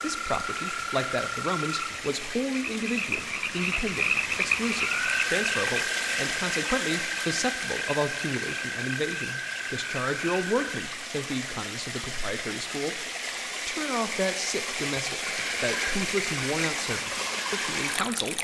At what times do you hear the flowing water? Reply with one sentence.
The flowing water can be heard from 0.0 to 18.3 s.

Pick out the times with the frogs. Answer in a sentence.
You can hear the frogs from 0.0 to 10.7 s.